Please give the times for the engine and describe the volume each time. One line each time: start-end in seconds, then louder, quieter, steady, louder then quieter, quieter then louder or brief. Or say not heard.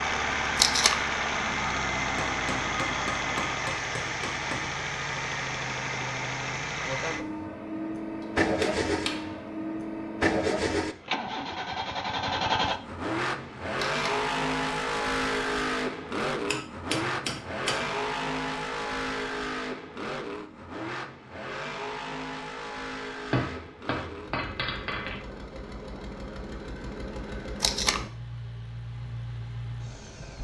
0.0-30.3 quieter.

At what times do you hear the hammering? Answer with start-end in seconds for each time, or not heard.
2.1-4.7, 8.2-9.5, 16.4-17.9, 23.3-25.2.